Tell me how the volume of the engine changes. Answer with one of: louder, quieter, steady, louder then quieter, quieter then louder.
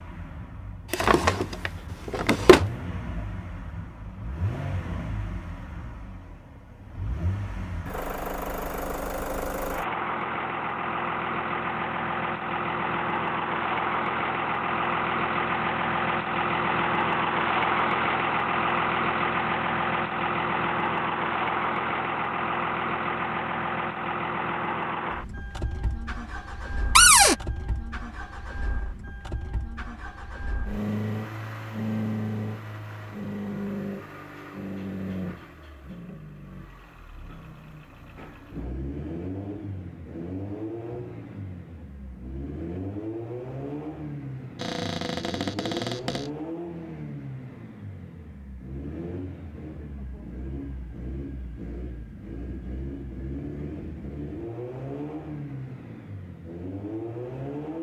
louder then quieter.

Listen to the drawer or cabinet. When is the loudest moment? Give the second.
27 s.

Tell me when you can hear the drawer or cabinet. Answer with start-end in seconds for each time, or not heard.
0.9-2.7, 26.9-27.4, 44.5-46.3.